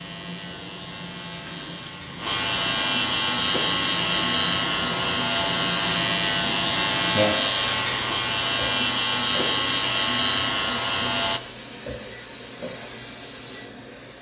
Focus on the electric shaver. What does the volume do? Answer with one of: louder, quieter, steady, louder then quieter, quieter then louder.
louder.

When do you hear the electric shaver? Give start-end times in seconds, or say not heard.
0.0-11.4.